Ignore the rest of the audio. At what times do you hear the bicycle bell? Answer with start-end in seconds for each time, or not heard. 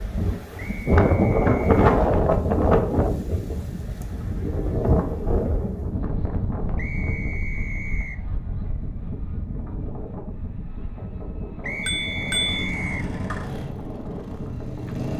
11.8-12.7.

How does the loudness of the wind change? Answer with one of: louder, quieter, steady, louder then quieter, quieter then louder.
quieter.